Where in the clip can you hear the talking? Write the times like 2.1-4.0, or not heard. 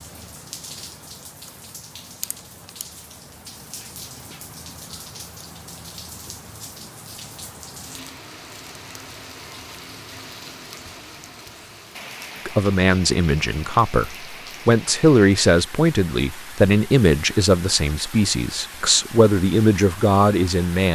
12.4-20.9.